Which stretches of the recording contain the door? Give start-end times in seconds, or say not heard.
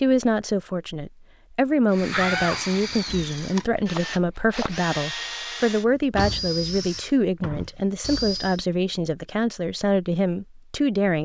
2.1-3.8, 6.2-7.0.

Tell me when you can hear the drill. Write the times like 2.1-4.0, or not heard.
1.9-8.6.